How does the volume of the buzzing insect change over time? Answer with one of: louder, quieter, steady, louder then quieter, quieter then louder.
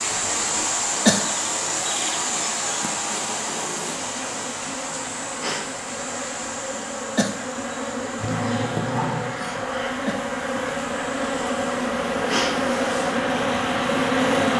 louder.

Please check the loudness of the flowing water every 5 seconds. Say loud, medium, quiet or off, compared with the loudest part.
loud, medium, medium.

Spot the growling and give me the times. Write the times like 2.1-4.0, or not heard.
8.2-9.6.